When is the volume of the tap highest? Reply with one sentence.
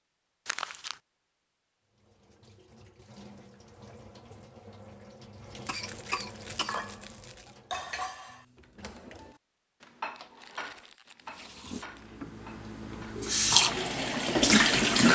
The loudest moment of the tap is at 15 seconds.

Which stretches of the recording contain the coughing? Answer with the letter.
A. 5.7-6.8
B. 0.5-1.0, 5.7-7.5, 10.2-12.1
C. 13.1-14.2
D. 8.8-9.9
A.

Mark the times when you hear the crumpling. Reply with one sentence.
The crumpling can be heard from 0.5 to 1.0 s, from 5.7 to 7.5 s and from 10.2 to 12.1 s.